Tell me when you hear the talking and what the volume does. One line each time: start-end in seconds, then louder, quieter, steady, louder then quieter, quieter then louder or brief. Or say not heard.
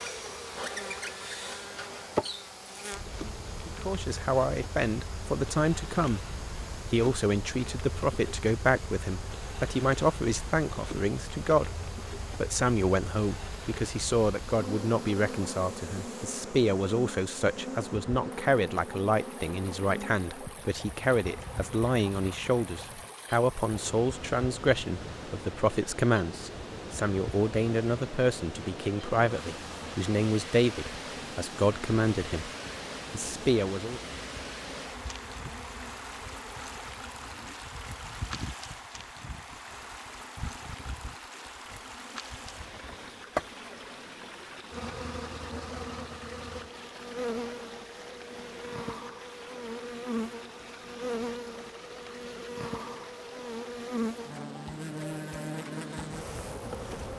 3.6-32.5 steady
33.1-34.0 brief.